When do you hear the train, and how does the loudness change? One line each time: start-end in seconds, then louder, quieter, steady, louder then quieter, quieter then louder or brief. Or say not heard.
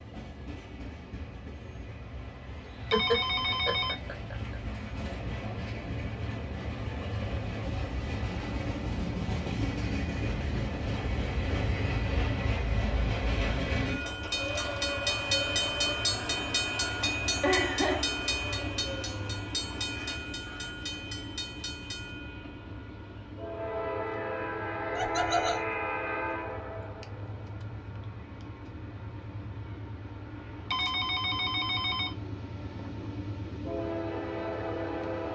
0.0-35.3 louder then quieter.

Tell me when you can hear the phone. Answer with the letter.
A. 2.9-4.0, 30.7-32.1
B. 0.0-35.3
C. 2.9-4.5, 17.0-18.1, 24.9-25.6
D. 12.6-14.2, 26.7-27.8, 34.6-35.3
A.